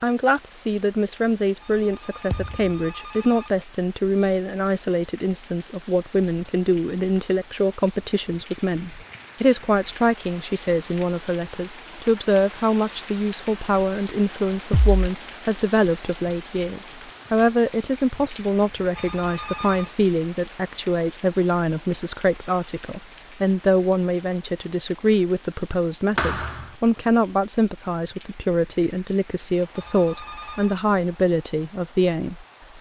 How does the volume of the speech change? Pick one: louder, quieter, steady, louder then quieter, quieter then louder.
steady.